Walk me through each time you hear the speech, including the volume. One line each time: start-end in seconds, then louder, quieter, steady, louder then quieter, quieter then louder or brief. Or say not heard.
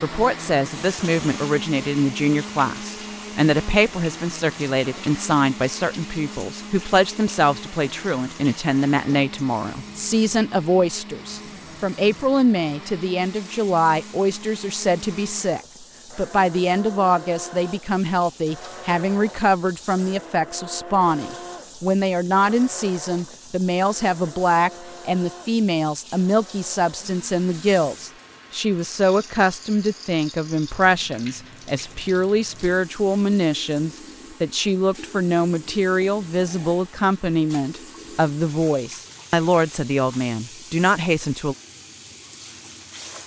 0.0-41.5 steady.